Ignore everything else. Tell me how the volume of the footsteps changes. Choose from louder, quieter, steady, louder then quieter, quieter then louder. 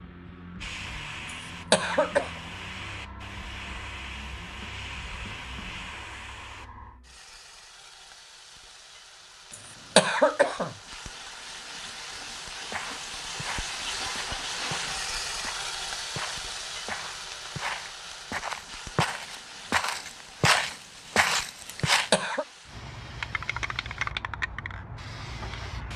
louder.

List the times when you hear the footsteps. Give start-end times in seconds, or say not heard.
12.7-22.1.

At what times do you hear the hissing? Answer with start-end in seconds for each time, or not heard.
0.0-25.9.